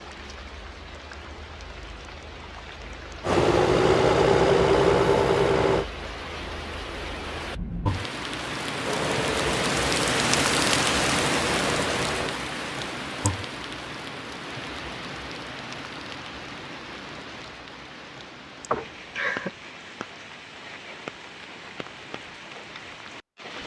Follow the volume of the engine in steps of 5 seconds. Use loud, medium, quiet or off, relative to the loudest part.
loud, medium, quiet, off, off.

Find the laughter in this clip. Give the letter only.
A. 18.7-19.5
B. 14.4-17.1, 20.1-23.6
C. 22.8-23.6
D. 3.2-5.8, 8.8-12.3
A.